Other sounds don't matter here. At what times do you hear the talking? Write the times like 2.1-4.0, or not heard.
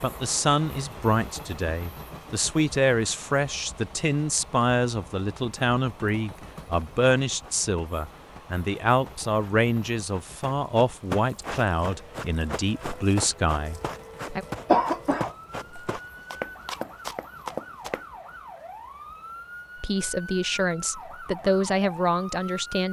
0.0-14.4, 19.8-22.8.